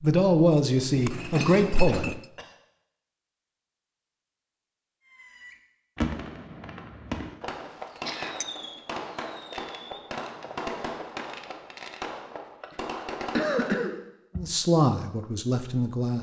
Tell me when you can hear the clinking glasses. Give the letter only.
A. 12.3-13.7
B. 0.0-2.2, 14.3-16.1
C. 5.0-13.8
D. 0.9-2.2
D.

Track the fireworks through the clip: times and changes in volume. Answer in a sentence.
The fireworks can be heard from 5.0 to 13.8 s, at a steady volume.